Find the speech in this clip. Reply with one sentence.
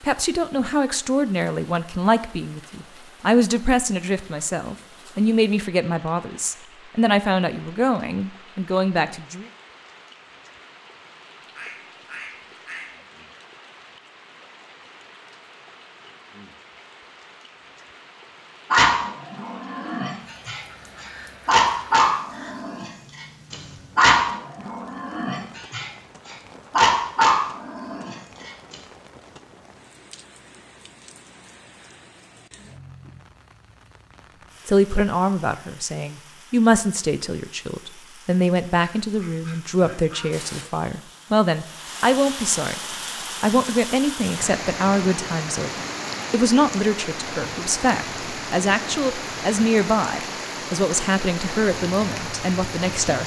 The speech can be heard from 0.0 to 9.4 s, from 34.6 to 42.8 s and from 43.4 to 53.2 s.